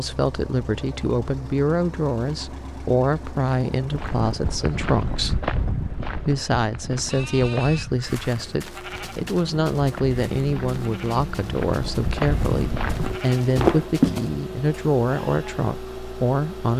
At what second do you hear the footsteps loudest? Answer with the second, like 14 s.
14 s.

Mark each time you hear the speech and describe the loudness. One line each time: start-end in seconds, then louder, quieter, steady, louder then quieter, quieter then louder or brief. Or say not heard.
0.0-16.7 steady.